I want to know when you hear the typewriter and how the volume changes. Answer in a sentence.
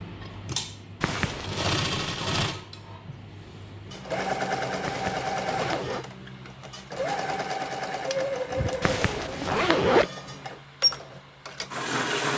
You can't hear the typewriter here.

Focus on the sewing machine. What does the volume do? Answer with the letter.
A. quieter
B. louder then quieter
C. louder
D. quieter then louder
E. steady
E.